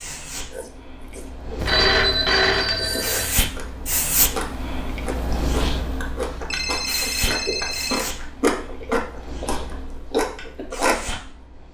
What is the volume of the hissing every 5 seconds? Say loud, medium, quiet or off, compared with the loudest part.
loud, loud, medium.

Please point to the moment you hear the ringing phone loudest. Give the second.
2 s.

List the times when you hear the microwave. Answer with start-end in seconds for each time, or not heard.
not heard.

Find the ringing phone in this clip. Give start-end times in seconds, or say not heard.
1.6-3.4, 6.5-8.1.